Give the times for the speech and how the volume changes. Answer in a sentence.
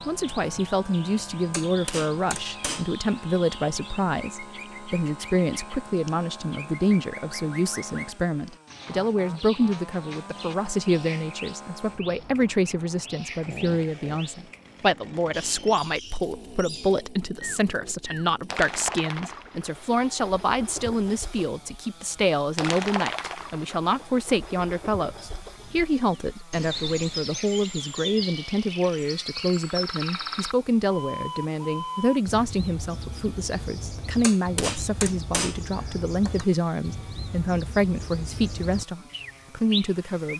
The speech can be heard from 0.1 to 40.3 s, at a steady volume.